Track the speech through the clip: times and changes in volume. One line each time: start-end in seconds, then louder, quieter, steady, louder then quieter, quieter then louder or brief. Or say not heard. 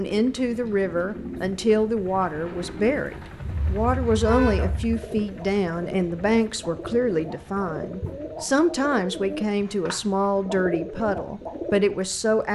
0.0-12.5 steady.